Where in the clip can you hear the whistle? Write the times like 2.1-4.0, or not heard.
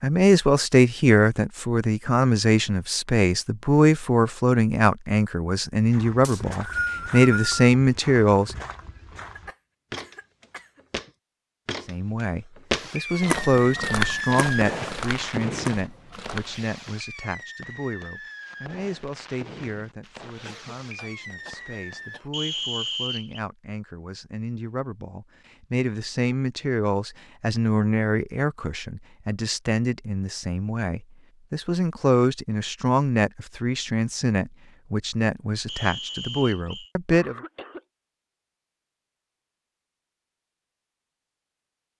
6.2-7.5, 22.3-23.4, 35.6-36.9.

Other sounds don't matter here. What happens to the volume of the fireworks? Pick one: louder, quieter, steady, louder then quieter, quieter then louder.
quieter.